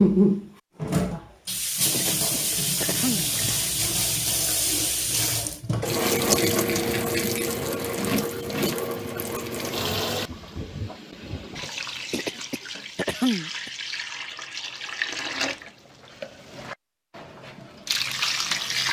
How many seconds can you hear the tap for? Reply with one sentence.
The tap can be heard for 19 seconds in total.